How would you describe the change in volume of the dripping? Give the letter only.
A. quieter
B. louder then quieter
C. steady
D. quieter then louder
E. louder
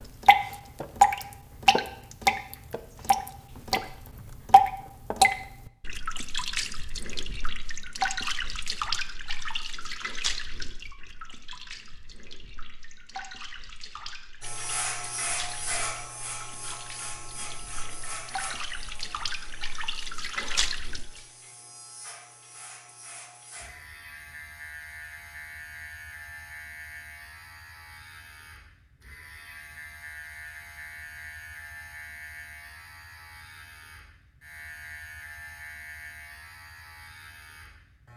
D.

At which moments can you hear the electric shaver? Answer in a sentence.
You can hear the electric shaver from 14.4 to 38.1 s.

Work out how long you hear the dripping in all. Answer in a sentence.
You can hear the dripping for 21 seconds altogether.